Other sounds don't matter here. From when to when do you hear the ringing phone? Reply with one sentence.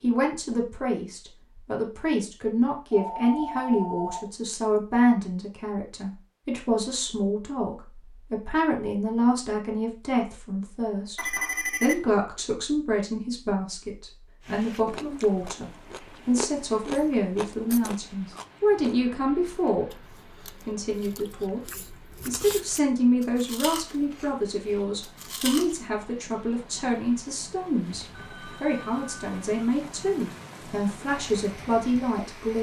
You can hear the ringing phone from 2.9 to 4.8 s, from 11.2 to 12.0 s and from 28.1 to 29.5 s.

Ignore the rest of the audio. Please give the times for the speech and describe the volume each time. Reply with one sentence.
The speech can be heard from 0.0 to 32.5 s, at a steady volume.